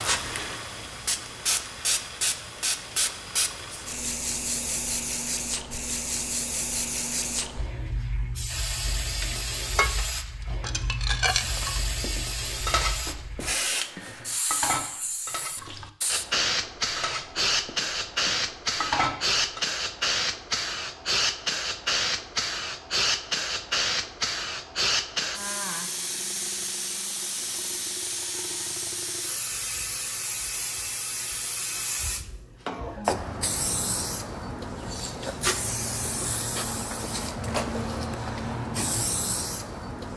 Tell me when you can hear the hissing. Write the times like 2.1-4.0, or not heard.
0.0-40.1.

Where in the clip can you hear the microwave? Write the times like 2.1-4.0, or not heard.
not heard.